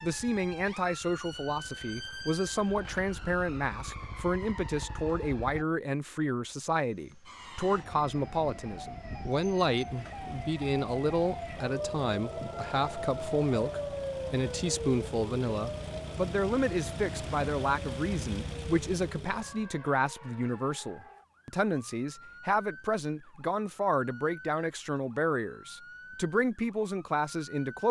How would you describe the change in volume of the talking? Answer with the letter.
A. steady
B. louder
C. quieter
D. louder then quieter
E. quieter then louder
A.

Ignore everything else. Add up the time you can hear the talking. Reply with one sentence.
The talking can be heard for 28 seconds in total.